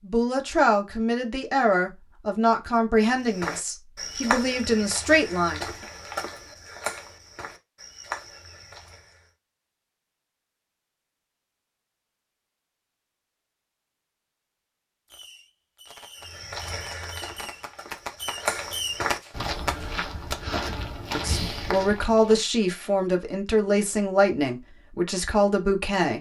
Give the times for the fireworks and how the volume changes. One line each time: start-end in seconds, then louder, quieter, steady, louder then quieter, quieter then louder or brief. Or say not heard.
15.1-20.4 louder.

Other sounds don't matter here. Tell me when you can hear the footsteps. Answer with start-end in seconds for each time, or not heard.
3.1-9.3, 16.2-22.4.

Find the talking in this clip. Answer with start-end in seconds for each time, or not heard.
0.0-5.7, 21.1-26.1.